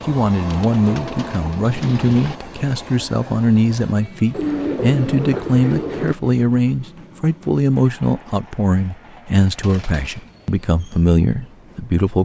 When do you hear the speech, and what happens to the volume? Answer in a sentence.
The speech can be heard from 0.1 to 12.2 s, at a steady volume.